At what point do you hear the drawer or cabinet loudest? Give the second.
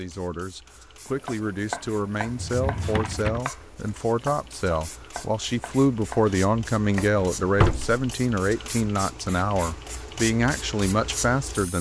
8 s.